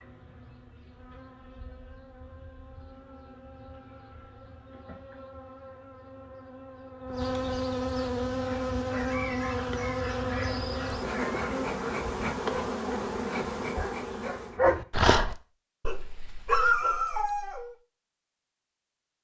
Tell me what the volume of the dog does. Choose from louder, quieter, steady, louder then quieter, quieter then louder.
louder.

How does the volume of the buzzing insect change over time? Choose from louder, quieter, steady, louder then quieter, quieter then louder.
louder.